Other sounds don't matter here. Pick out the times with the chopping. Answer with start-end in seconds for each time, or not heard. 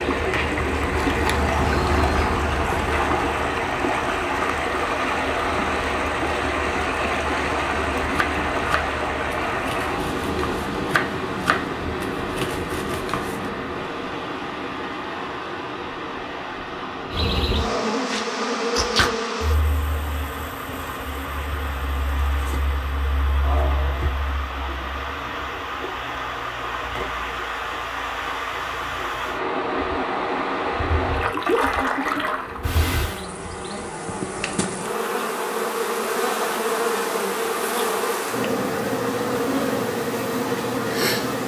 8.1-13.5.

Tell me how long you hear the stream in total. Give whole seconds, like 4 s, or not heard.
33 s.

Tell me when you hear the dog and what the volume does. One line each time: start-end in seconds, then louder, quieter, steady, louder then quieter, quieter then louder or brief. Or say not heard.
not heard.